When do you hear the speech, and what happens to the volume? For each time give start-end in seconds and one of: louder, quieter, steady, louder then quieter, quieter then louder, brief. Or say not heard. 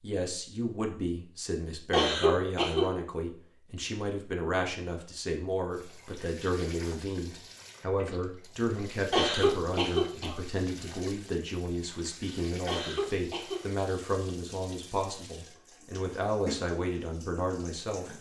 0.0-18.1 steady.